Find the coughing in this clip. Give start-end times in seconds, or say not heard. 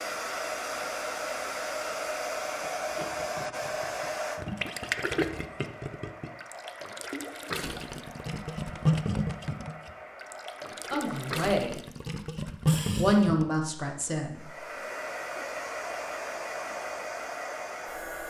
not heard.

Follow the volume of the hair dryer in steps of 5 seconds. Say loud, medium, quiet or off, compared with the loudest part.
loud, quiet, medium, loud.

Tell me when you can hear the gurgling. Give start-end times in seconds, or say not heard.
2.9-13.6.